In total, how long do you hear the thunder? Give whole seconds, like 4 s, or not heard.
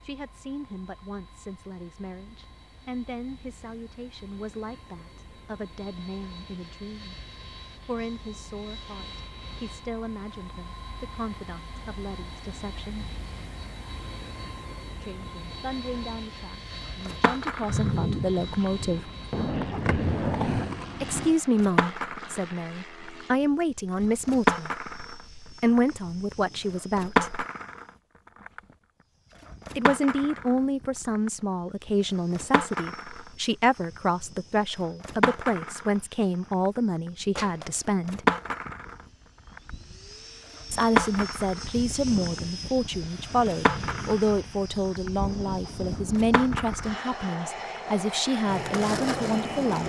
6 s.